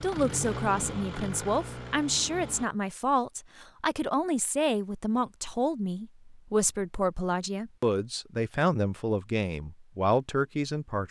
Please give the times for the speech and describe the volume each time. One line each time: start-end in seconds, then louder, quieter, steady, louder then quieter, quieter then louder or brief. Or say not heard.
0.0-11.0 steady.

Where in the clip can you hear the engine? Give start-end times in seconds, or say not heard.
0.0-2.7.